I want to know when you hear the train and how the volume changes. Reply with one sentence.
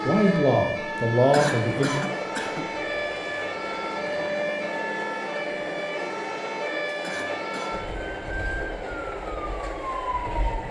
The train can be heard from 0.0 to 10.6 s, at a steady volume.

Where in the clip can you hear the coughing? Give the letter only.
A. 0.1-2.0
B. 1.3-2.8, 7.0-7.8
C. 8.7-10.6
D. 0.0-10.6
B.